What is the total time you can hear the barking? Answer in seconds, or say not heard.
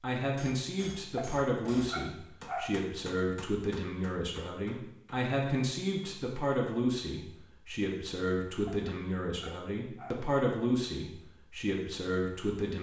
3 s.